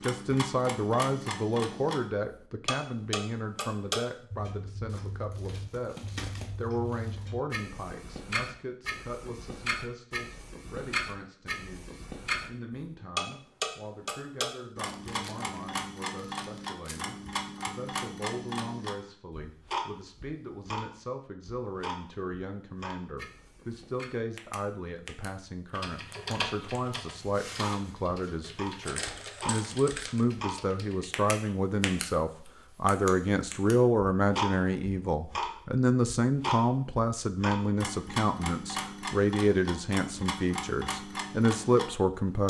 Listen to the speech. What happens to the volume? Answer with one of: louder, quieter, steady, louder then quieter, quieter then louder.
quieter then louder.